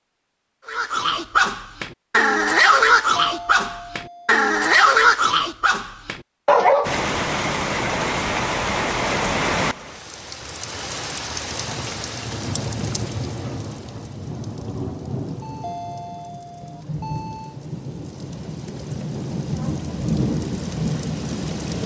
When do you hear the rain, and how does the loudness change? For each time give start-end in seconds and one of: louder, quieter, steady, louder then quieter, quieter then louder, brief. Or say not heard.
6.8-21.8 quieter then louder.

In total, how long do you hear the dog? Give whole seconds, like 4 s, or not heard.
6 s.